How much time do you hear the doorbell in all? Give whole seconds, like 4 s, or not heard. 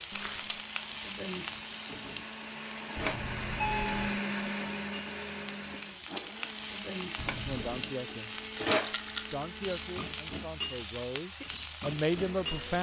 2 s.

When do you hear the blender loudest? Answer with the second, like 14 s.
4 s.